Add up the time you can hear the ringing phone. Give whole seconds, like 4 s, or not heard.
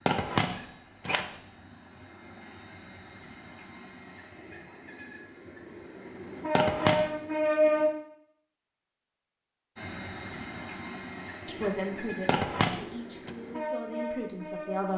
3 s.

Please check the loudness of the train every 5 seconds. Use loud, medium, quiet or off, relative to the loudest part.
quiet, loud, medium.